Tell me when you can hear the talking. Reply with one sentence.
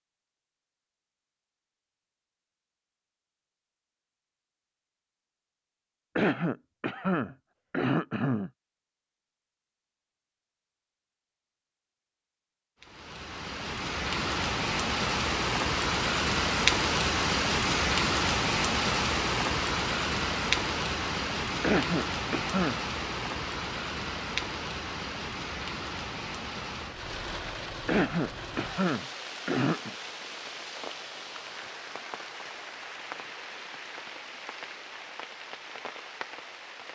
The talking can't be heard in this clip.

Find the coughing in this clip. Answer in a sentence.
You can hear the coughing from 6.2 to 8.5 s, from 21.6 to 22.8 s and from 27.9 to 29.9 s.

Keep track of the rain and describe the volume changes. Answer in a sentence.
The loudness of the rain goes down.